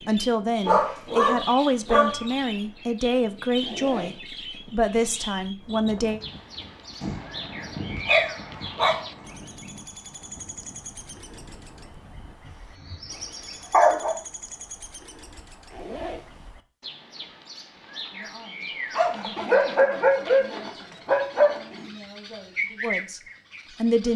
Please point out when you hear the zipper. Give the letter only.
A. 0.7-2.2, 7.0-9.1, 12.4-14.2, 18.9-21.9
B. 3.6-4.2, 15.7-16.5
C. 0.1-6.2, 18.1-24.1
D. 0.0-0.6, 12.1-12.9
B.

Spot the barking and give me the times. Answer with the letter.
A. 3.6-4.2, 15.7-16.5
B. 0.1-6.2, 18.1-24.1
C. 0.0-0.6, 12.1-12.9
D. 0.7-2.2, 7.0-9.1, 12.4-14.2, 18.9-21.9
D.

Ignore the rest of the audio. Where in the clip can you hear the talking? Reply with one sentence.
You can hear the talking from 0.1 to 6.2 s and from 18.1 to 24.1 s.